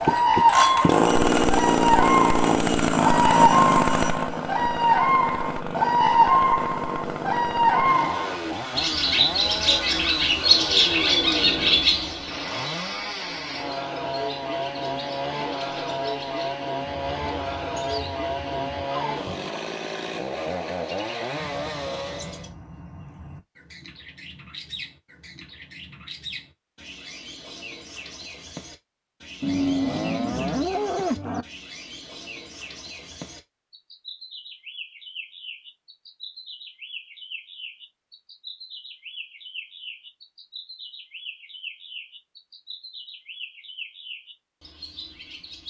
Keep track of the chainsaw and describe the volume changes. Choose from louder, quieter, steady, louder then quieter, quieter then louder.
quieter.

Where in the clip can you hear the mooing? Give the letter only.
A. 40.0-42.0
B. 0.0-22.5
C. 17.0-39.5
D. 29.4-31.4
D.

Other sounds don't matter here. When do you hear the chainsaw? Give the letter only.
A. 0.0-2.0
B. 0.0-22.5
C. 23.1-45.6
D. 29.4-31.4
B.